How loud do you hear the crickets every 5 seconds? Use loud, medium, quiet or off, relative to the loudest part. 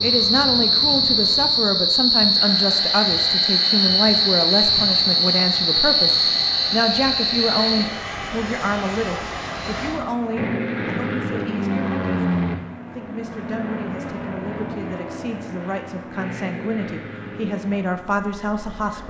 loud, loud, off, off.